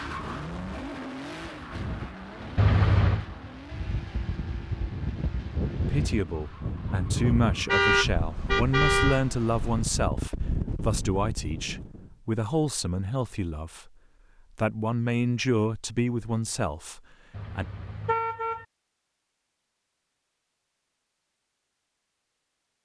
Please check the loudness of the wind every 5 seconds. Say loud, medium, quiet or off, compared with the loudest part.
medium, loud, loud, off, off.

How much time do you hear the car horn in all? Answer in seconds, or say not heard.
4 s.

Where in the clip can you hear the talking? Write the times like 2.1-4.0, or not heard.
5.8-13.9, 14.6-17.6.